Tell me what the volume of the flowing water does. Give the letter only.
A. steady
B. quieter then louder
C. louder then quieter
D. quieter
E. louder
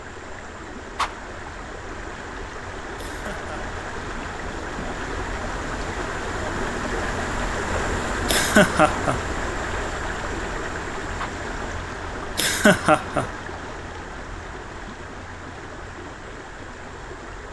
C.